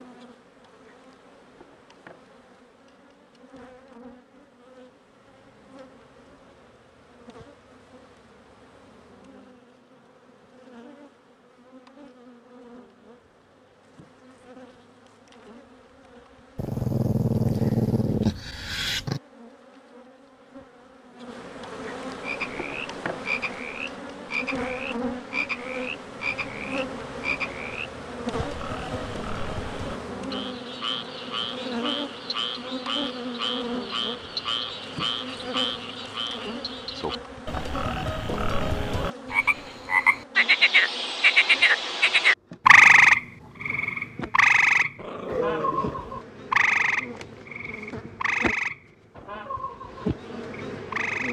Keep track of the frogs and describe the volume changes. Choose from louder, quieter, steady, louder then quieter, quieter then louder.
louder then quieter.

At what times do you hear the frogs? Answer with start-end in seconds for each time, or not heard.
22.2-51.2.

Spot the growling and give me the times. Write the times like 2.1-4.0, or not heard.
16.6-19.2, 45.0-46.1.